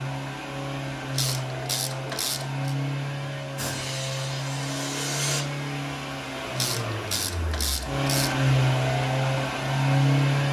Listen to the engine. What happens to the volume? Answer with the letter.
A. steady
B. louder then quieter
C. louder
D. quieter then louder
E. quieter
C.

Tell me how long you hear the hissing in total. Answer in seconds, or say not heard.
2 s.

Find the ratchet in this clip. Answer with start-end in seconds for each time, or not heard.
1.0-2.8, 6.4-8.3.